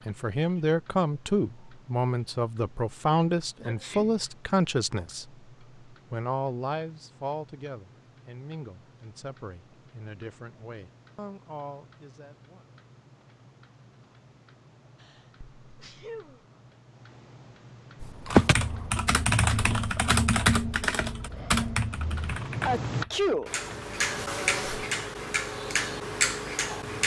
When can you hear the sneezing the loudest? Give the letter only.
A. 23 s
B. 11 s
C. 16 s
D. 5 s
A.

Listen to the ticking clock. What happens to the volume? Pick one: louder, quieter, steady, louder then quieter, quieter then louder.
louder.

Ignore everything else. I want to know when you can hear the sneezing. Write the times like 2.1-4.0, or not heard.
3.6-4.2, 15.0-16.4, 22.6-23.5.